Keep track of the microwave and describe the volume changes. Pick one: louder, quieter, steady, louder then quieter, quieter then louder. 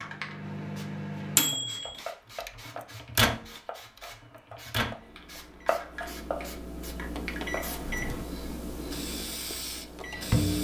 quieter.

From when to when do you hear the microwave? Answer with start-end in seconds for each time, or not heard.
0.0-10.5.